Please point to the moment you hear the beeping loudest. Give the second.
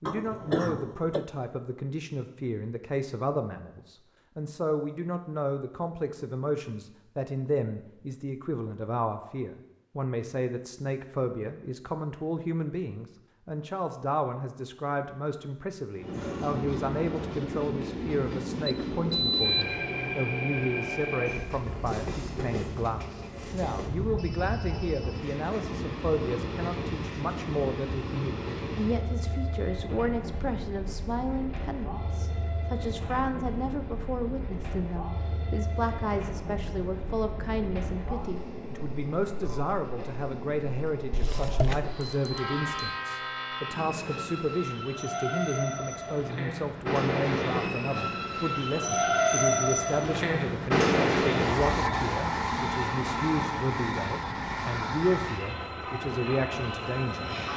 19 s.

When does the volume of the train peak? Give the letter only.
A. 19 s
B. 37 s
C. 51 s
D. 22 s
C.